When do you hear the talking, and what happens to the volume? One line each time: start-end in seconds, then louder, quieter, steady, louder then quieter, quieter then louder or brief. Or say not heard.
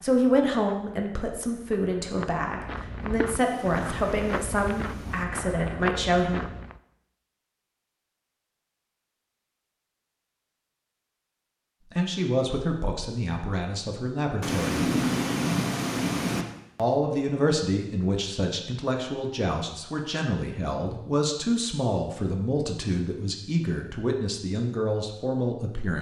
0.0-6.5 steady
11.9-14.8 brief
16.8-25.9 steady.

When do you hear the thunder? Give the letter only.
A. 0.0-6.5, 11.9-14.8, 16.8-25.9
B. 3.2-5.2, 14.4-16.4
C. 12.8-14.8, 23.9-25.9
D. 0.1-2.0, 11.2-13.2
B.